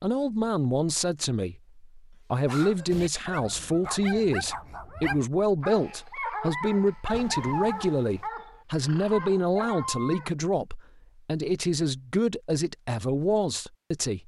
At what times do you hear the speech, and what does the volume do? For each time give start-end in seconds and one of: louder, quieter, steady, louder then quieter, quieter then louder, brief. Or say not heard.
0.0-14.2 steady.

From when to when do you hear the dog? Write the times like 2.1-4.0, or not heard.
2.5-10.3.